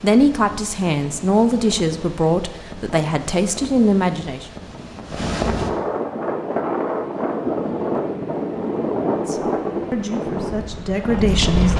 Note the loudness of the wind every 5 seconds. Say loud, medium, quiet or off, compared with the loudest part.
quiet, loud, loud.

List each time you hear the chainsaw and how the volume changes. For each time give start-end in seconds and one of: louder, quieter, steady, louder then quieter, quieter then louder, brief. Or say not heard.
not heard.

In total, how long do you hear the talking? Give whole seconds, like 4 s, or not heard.
7 s.